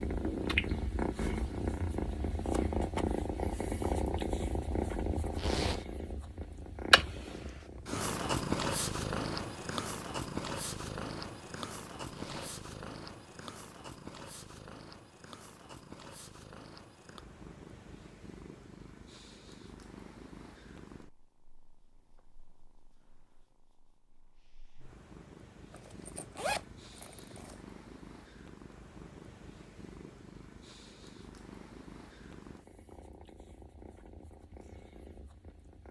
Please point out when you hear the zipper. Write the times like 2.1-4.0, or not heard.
5.3-5.8, 12.1-12.6, 25.7-27.6.